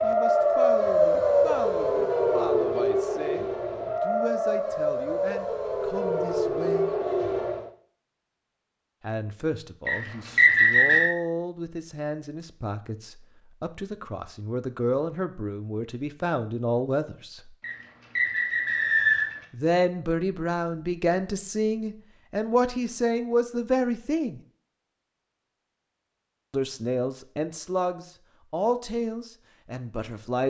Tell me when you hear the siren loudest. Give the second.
1 s.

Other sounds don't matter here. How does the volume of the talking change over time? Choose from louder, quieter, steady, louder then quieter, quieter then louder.
louder.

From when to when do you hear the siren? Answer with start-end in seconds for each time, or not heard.
0.0-7.7.